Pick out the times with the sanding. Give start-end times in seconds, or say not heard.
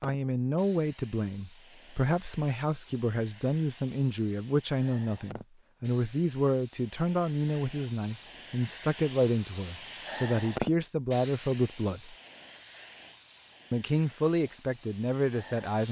not heard.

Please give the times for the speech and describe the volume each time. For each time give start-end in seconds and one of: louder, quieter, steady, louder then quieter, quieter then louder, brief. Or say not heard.
0.0-12.2 steady
13.7-15.8 brief.